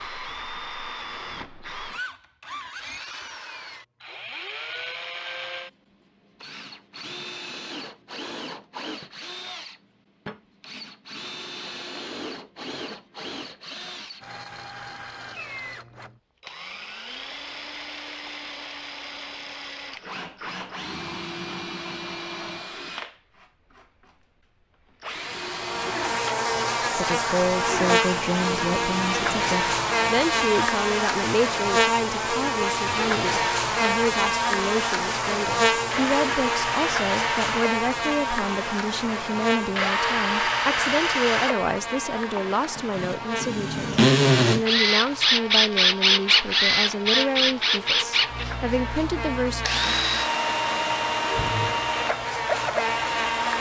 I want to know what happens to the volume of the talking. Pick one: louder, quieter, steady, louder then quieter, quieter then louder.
steady.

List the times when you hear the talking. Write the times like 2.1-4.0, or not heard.
26.8-49.6.